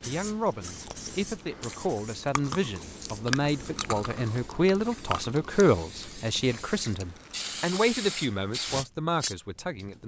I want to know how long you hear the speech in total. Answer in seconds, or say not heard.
10 s.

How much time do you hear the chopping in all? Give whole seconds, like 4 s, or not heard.
not heard.